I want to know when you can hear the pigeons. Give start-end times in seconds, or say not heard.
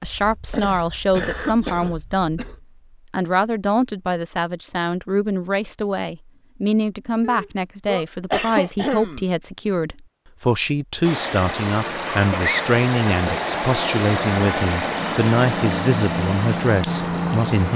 not heard.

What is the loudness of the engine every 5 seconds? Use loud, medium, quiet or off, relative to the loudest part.
off, off, loud, loud.